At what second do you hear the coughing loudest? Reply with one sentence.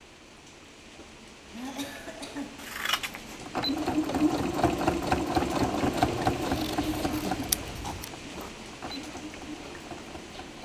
The volume of the coughing peaks at 2 seconds.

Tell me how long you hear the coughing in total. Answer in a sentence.
The coughing can be heard for 3 seconds in total.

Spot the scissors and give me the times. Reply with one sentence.
You can hear the scissors from 2.5 to 3.4 s and from 6.4 to 8.1 s.